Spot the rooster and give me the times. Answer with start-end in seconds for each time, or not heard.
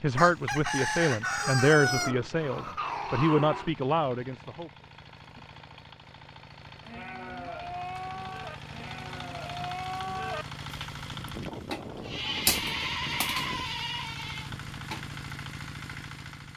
0.1-2.1.